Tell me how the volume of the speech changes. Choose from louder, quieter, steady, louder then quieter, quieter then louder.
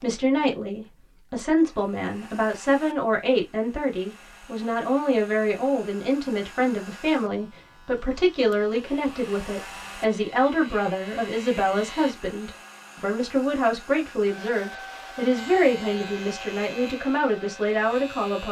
steady.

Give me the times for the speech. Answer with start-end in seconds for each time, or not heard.
0.0-18.4.